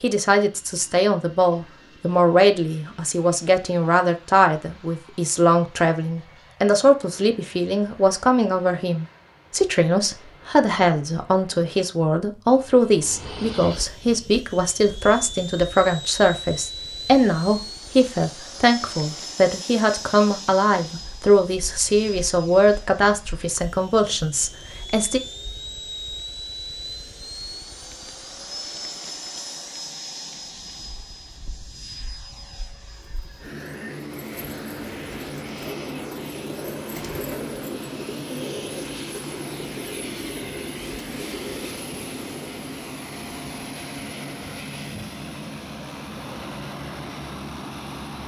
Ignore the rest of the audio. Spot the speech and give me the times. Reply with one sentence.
You can hear the speech from 0.0 to 25.2 s.